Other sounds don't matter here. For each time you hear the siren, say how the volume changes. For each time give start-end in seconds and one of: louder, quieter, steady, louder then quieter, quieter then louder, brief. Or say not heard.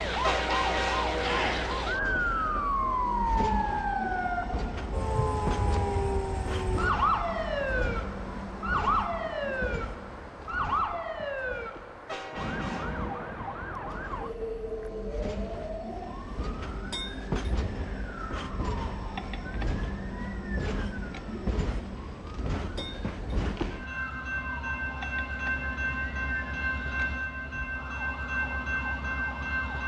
0.0-29.8 quieter.